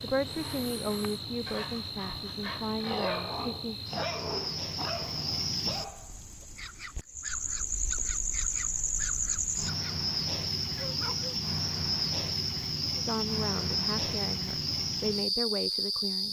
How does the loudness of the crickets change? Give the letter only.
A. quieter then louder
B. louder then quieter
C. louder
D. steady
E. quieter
C.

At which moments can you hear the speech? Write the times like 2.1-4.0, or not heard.
0.0-3.8, 12.9-16.2.